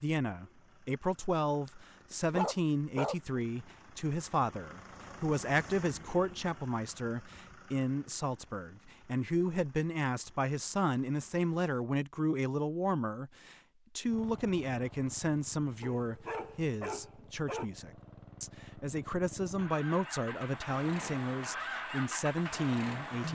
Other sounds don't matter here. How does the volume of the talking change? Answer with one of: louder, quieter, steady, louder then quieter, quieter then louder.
steady.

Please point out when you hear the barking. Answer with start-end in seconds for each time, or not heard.
1.6-3.4, 15.8-17.6.